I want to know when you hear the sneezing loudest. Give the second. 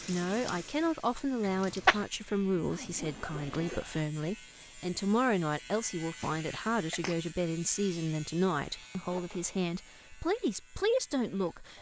2 s.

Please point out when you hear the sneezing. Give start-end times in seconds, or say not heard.
1.4-2.0, 6.2-7.2.